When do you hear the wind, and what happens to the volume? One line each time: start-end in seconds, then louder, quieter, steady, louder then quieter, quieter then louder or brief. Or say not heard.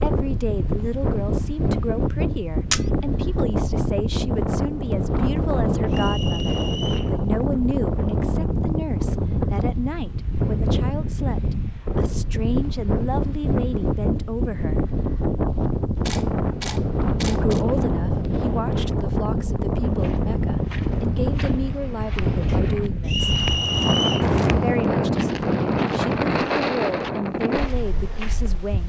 0.0-28.8 steady.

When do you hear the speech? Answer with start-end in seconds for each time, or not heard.
0.0-14.8, 17.2-23.3, 24.6-28.8.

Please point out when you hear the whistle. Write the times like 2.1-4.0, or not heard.
5.9-7.2, 23.1-24.2.